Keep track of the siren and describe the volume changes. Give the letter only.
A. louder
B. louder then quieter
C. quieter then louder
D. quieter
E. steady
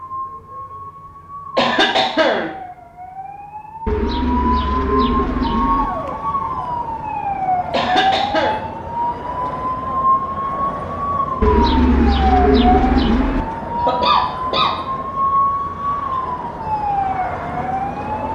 A.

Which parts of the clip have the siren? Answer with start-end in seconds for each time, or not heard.
0.0-18.2.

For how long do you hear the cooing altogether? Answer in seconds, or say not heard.
4 s.